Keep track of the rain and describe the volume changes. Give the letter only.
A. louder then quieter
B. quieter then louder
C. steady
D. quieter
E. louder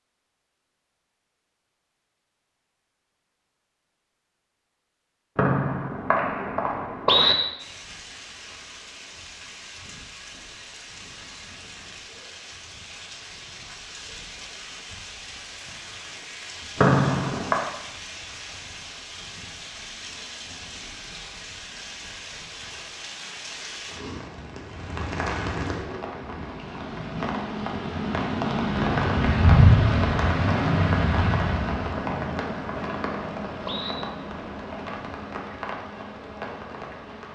A.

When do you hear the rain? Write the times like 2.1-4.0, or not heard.
7.5-37.3.